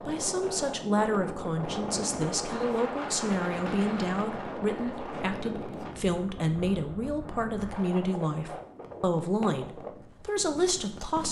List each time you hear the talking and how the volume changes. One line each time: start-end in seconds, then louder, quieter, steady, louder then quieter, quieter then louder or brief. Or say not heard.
0.1-11.2 steady.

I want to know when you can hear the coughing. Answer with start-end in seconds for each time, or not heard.
not heard.